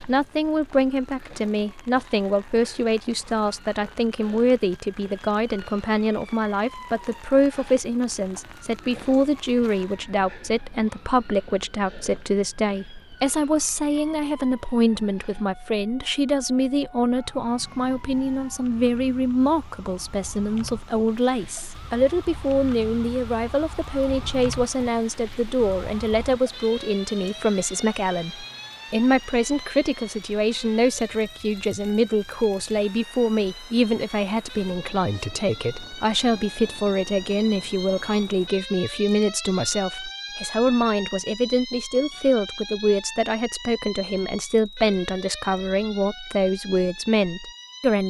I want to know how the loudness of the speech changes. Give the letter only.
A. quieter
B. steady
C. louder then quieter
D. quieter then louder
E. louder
B.